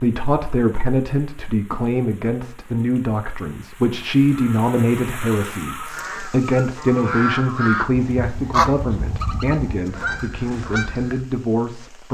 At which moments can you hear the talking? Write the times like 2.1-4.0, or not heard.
0.0-12.0.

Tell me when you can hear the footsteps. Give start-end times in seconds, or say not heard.
not heard.